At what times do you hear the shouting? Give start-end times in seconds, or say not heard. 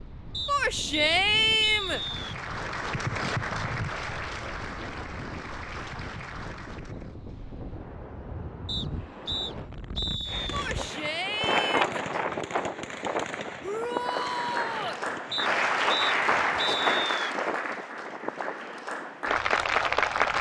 0.5-2.0, 10.5-11.9, 13.6-15.0.